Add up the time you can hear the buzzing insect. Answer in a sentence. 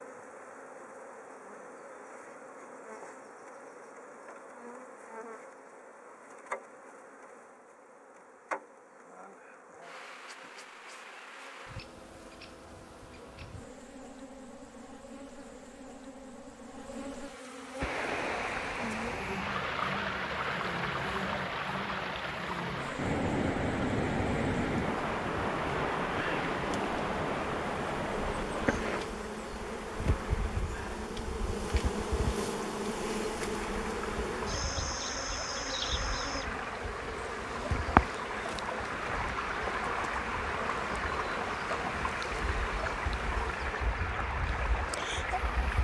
The buzzing insect can be heard for 46 seconds in total.